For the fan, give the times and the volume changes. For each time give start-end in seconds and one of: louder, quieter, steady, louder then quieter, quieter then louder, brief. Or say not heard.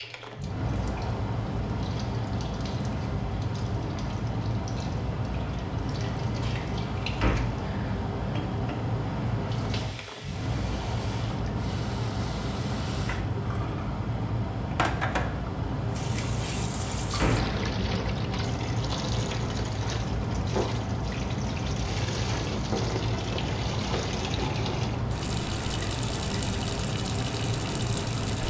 0.0-28.4 steady.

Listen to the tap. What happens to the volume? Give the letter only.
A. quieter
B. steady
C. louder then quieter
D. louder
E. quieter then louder
D.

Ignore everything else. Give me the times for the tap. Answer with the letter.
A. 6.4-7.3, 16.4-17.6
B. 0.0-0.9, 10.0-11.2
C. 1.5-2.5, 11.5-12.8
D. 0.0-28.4
D.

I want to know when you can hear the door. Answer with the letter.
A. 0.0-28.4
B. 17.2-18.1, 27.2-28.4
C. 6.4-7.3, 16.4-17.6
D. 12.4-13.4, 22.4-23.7
C.